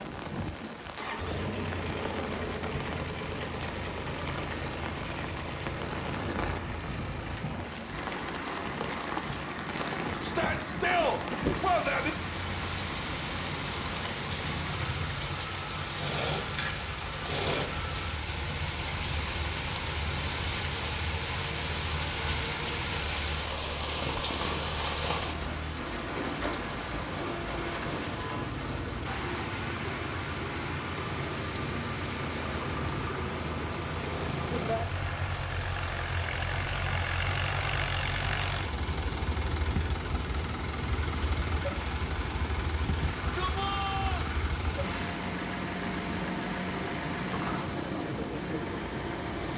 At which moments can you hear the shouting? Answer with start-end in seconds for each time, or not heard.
10.2-12.1, 43.0-44.3.